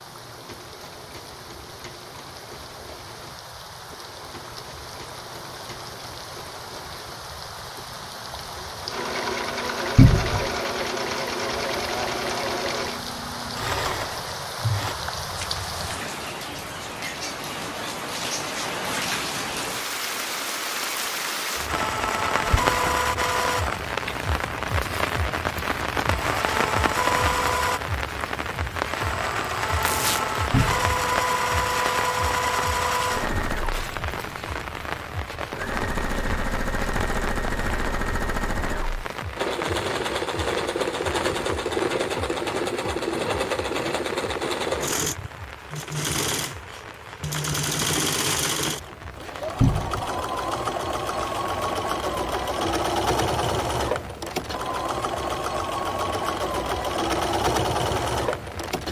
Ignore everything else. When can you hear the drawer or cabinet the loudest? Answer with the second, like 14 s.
10 s.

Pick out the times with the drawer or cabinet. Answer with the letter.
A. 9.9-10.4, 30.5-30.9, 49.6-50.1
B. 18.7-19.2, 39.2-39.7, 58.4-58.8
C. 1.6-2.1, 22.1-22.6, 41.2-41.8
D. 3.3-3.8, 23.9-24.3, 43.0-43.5
A.